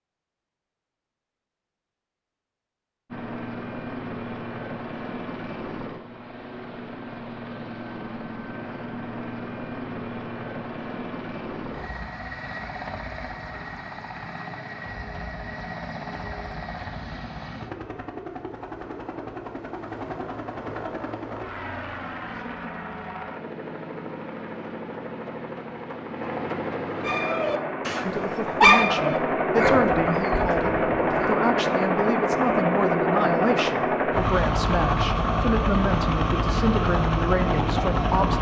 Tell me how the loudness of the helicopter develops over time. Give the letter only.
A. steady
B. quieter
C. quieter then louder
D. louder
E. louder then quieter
D.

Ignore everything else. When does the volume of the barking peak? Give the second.
29 s.